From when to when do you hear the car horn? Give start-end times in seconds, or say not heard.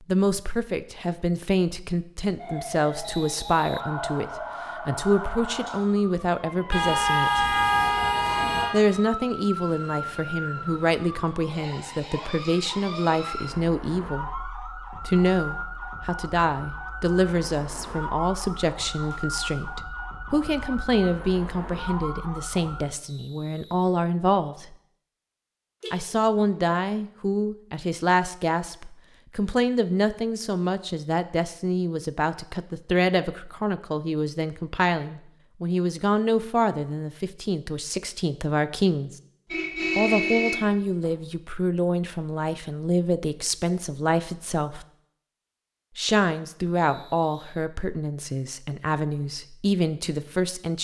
6.7-8.8, 25.8-26.6, 39.5-41.1.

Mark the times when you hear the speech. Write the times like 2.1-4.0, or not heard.
0.1-7.6, 8.7-24.8, 25.9-39.1, 40.0-44.9, 46.0-50.7.